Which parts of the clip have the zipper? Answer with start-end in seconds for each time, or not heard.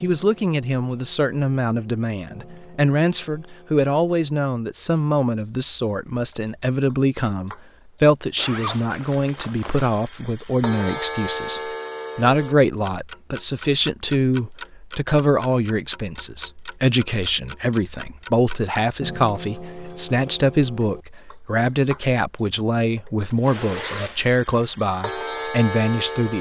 8.3-9.9, 23.4-24.2.